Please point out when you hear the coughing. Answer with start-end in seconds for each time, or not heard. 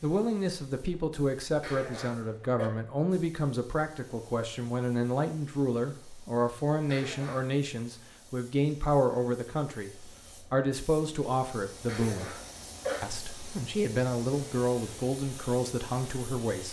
1.6-2.7, 6.8-7.5, 11.8-13.1.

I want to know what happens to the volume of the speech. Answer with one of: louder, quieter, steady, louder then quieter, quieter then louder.
steady.